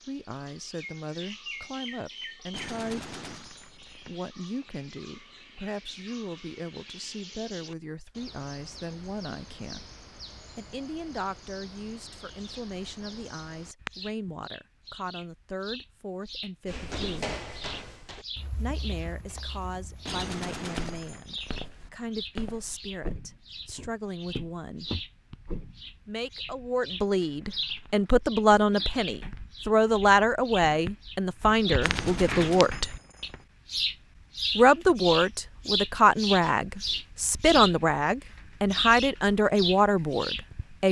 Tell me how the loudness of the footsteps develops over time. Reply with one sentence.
The volume of the footsteps goes down, then up.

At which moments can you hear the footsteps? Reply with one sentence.
You can hear the footsteps from 16.6 to 25.9 s.